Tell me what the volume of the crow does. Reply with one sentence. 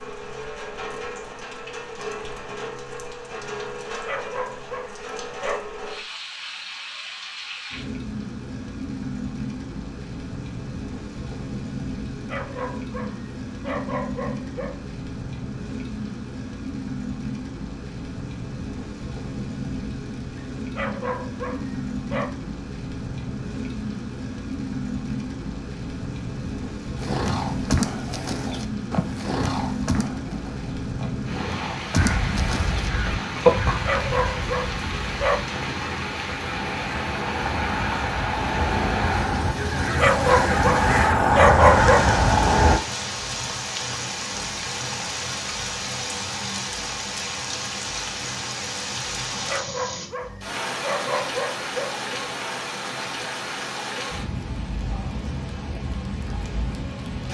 The volume of the crow goes down, then up.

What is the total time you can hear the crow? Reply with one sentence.
The crow can be heard for 11 seconds in total.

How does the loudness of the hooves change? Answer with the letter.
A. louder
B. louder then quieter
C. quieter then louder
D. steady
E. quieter
C.